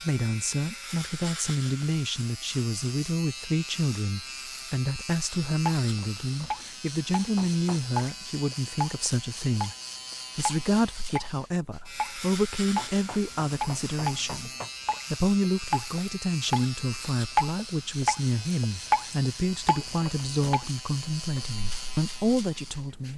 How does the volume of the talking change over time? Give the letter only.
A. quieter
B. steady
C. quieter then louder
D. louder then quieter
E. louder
B.